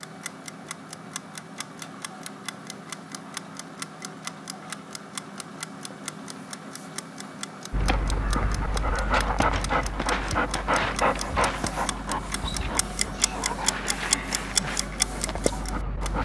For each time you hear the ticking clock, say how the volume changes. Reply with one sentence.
The ticking clock can be heard from 0.0 to 16.2 s, getting louder.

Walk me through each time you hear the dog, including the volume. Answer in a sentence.
You can hear the dog from 7.7 to 16.2 s, getting quieter.